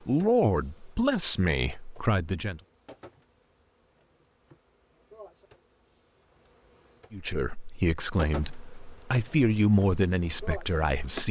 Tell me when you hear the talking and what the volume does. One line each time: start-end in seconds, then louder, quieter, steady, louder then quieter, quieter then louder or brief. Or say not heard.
0.1-2.6 brief
7.1-11.2 louder then quieter.